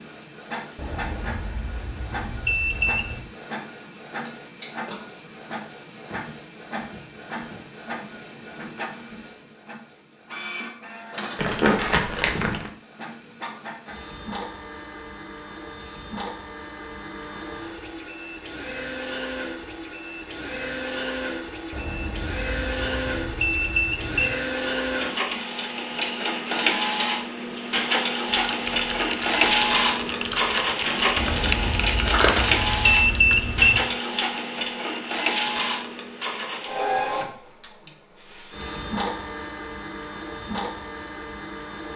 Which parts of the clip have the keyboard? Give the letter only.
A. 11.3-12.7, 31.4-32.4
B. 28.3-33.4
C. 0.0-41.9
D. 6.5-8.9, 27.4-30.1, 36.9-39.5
B.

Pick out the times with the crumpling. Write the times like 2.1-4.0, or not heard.
11.3-12.7, 31.4-32.4.